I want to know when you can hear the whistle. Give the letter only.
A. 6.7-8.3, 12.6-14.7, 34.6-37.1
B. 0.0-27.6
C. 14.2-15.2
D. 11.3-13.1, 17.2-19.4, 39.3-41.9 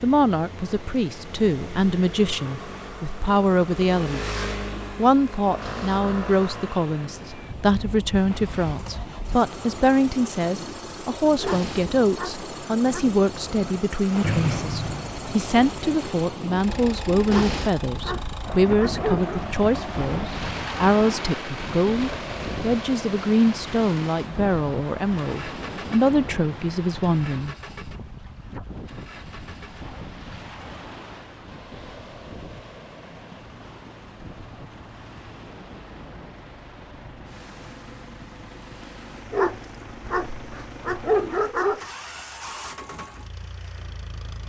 C.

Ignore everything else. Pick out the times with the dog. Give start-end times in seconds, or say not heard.
11.3-13.1, 17.2-19.4, 39.3-41.9.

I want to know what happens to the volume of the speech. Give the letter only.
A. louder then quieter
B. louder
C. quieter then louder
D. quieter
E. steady
E.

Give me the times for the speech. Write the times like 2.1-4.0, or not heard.
0.0-27.6.